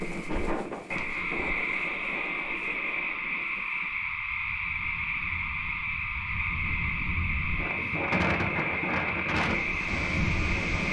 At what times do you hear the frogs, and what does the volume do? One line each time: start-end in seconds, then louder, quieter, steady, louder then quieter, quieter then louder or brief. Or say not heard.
0.0-10.8 steady.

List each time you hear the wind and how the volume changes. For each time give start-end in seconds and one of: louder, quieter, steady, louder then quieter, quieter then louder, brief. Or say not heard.
0.0-10.8 quieter then louder.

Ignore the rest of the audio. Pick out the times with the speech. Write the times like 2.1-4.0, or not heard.
not heard.